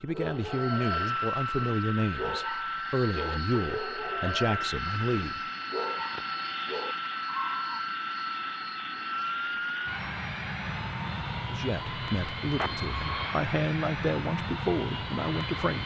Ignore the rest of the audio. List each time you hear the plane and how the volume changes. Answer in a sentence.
The plane can be heard from 0.0 to 15.8 s, at a steady volume.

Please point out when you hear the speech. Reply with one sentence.
You can hear the speech from 0.0 to 5.4 s and from 11.4 to 15.8 s.